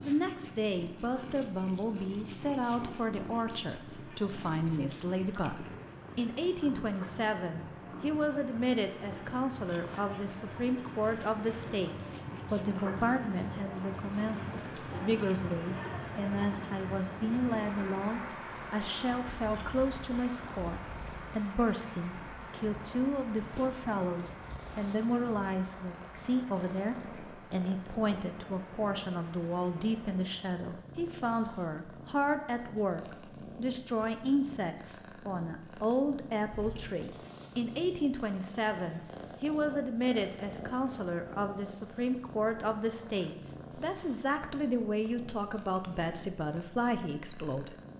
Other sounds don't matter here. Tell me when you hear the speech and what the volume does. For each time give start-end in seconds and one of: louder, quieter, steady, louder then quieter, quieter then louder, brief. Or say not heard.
0.0-47.8 steady.